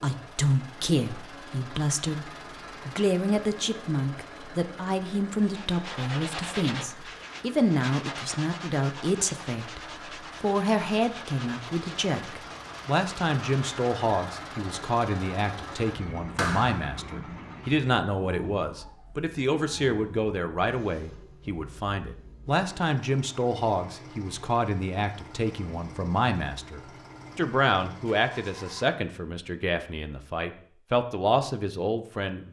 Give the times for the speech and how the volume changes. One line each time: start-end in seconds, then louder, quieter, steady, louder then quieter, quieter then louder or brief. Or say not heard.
0.0-32.4 steady.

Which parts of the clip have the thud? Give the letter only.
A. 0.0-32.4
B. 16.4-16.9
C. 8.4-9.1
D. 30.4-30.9
B.